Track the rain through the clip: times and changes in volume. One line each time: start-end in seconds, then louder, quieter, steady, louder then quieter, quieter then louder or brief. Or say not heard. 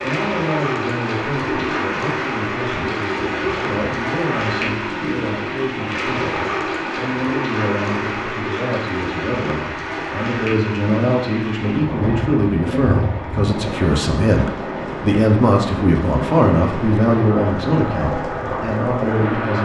0.0-19.6 steady.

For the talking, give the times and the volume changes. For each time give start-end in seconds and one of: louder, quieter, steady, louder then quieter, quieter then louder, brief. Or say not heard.
0.0-19.6 louder.